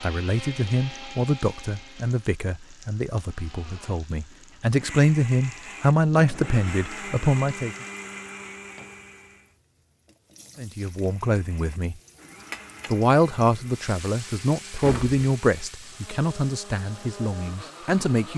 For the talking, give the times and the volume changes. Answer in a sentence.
You can hear the talking from 0.0 to 7.8 s, getting quieter then louder; briefly from 10.6 to 11.9 s; and from 12.9 to 18.3 s, getting quieter.